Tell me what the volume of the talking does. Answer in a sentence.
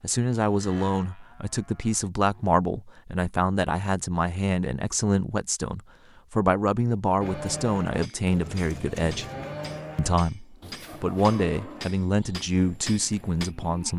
The volume of the talking stays about the same.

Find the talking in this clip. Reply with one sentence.
The talking can be heard from 0.0 to 9.2 s and from 9.9 to 13.9 s.